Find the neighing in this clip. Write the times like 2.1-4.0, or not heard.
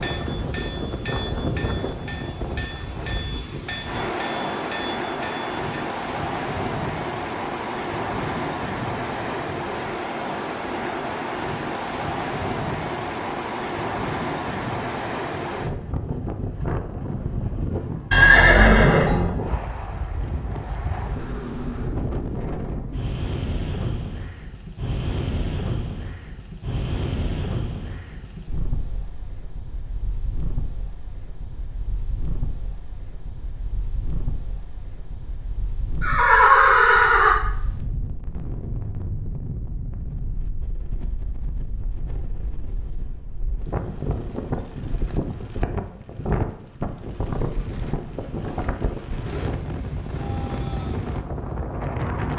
18.1-19.3, 36.0-37.4.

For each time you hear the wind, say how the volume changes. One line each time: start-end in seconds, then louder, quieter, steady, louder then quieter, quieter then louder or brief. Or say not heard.
0.0-52.3 quieter then louder.